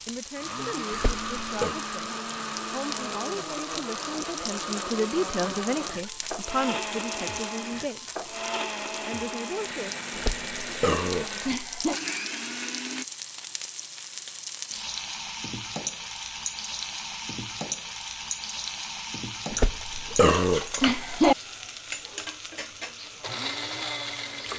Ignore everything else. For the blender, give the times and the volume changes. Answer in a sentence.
The blender can be heard from 0.3 to 13.1 s, at a steady volume; and briefly from 23.0 to 24.5 s.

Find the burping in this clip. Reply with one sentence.
You can hear the burping from 0.9 to 1.8 s, from 10.2 to 12.0 s and from 19.5 to 21.4 s.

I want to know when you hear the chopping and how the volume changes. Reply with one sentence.
The chopping can't be heard in this clip.